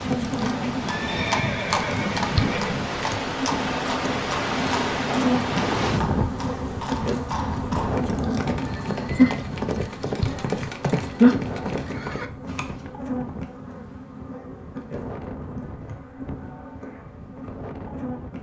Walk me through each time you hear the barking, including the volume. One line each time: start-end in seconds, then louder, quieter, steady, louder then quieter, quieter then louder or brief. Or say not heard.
not heard.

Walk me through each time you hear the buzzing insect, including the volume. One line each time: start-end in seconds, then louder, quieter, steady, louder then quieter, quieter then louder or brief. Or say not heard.
0.0-18.3 quieter.